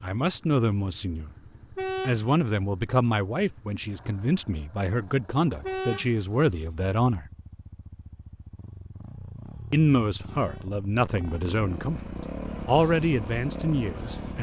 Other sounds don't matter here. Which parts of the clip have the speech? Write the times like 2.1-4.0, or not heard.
0.0-1.3, 2.0-7.2, 9.7-12.0, 12.7-14.3.